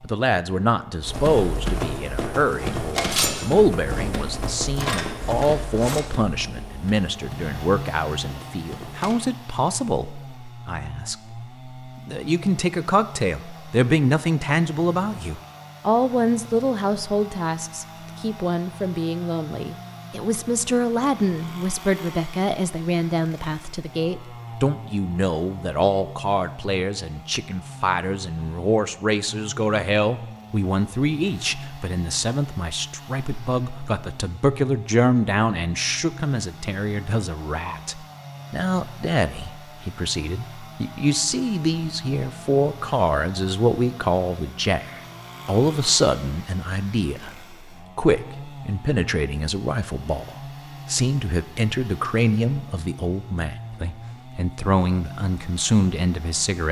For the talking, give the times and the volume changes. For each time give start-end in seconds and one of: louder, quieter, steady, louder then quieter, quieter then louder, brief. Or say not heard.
0.0-56.6 steady.